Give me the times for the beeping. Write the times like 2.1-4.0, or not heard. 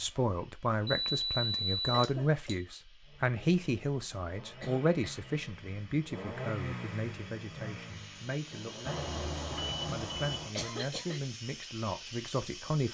0.8-2.5, 8.8-10.6.